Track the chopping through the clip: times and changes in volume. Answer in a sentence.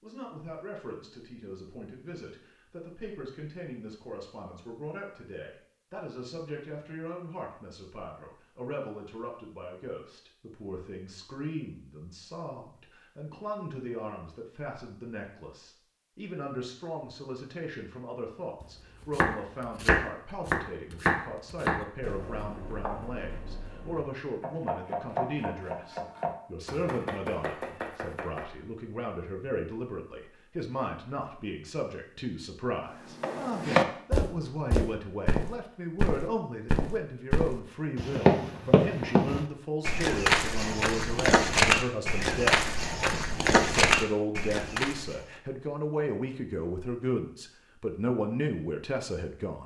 The chopping can be heard from 18.6 to 28.4 s, getting quieter then louder.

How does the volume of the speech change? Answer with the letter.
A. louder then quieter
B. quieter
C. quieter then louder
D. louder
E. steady
D.